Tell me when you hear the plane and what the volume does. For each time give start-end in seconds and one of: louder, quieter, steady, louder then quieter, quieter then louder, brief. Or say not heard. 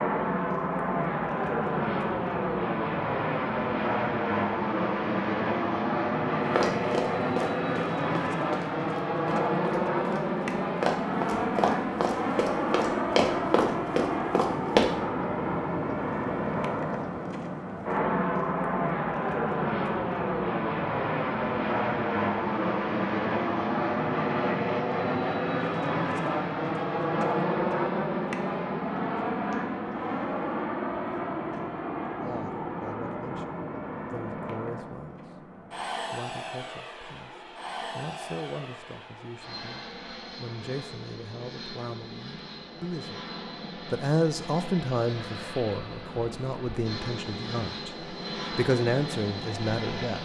0.0-50.2 quieter.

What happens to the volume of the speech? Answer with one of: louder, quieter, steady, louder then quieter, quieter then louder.
louder.